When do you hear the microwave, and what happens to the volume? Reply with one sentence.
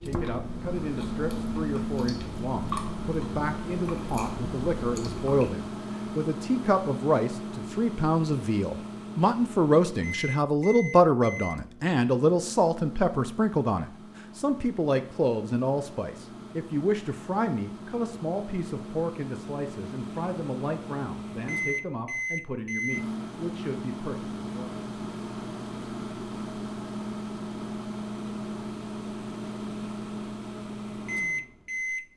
You can hear the microwave from 0.0 to 32.1 s, getting quieter then louder.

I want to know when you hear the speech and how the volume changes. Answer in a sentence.
You can hear the speech from 0.0 to 24.8 s, getting louder then quieter.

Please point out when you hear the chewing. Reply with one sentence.
The chewing can be heard from 0.0 to 5.5 s.